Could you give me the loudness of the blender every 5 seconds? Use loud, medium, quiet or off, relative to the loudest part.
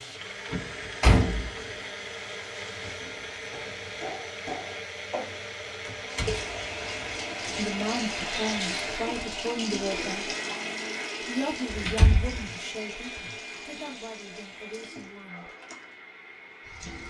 loud, loud, loud, medium.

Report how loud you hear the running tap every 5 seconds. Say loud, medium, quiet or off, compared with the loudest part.
medium, loud, medium, quiet.